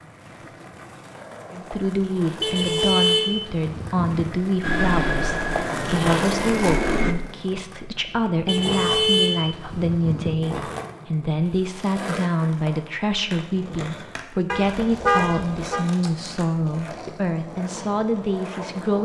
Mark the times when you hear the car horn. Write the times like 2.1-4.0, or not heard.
2.4-4.3, 8.4-10.3, 14.5-15.8.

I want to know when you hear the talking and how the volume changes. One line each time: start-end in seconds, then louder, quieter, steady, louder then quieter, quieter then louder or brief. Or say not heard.
1.5-19.0 steady.